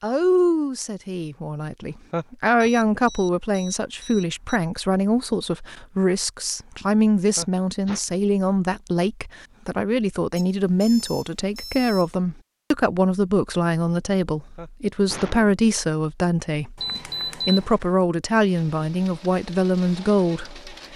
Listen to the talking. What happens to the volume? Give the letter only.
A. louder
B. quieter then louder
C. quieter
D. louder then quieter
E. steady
E.